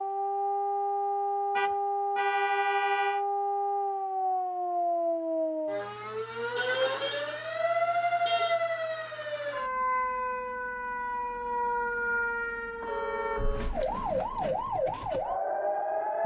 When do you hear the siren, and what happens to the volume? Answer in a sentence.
You can hear the siren from 0.0 to 16.2 s, at a steady volume.